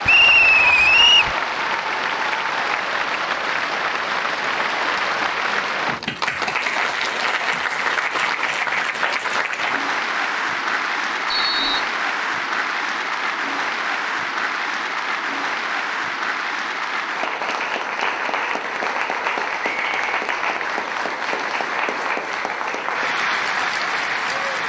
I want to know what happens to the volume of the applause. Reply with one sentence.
The loudness of the applause stays about the same.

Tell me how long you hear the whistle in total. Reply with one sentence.
The whistle can be heard for 2 seconds in total.